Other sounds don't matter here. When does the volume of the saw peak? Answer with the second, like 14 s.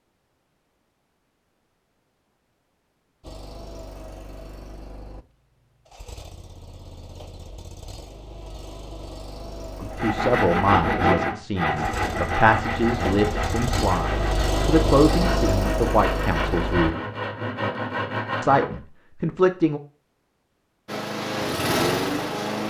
11 s.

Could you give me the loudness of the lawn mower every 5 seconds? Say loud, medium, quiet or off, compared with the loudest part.
quiet, quiet, medium, loud, loud.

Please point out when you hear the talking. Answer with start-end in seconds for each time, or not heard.
9.8-16.9, 18.4-19.8.